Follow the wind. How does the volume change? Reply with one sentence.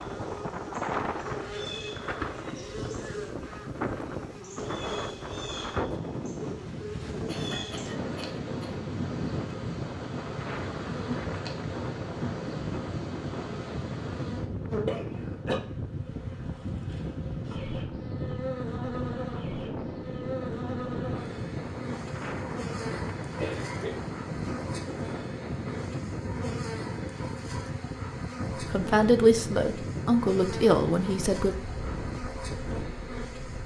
The loudness of the wind stays about the same.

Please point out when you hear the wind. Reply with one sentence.
The wind can be heard from 0.0 to 33.6 s.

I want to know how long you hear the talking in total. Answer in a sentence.
The talking can be heard for 3 seconds in total.